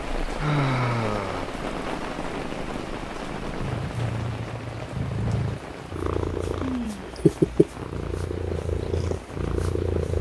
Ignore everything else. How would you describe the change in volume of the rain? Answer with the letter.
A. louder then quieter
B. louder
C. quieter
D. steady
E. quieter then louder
C.